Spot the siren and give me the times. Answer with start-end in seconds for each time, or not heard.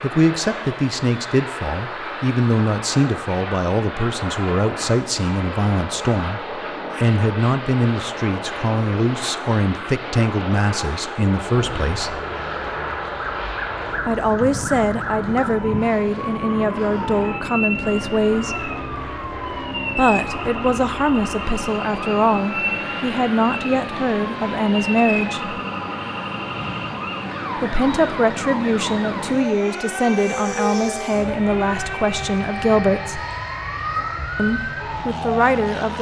11.5-35.9.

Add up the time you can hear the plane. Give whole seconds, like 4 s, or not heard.
36 s.